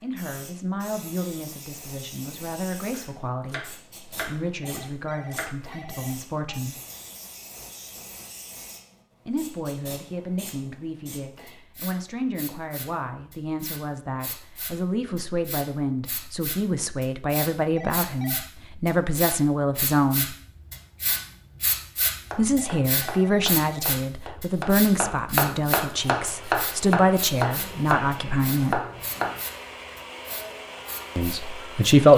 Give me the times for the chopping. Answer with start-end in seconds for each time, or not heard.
2.9-5.5, 22.2-29.4.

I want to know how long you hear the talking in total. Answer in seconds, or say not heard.
25 s.